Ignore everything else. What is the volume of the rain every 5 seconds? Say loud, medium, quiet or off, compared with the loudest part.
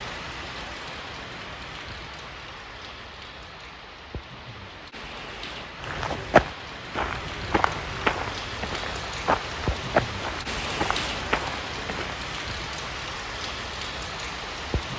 medium, loud, loud.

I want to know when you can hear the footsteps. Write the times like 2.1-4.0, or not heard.
5.8-12.2.